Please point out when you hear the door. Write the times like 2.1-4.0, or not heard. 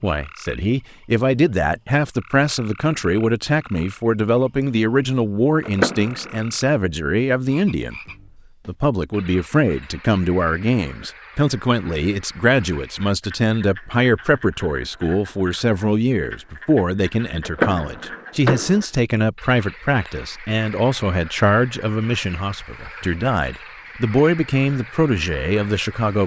5.7-6.4, 17.4-18.9.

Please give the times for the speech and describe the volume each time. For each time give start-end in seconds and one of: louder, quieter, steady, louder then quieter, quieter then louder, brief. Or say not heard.
0.0-8.0 steady
8.7-26.2 steady.